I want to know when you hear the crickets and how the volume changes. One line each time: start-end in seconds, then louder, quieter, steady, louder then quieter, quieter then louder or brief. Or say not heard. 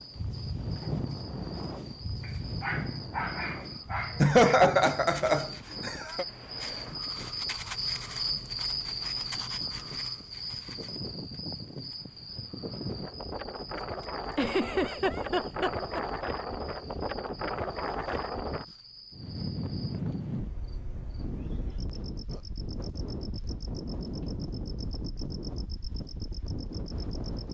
0.0-27.4 louder then quieter.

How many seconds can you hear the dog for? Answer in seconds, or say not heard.
2 s.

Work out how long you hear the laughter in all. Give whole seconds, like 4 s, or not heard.
4 s.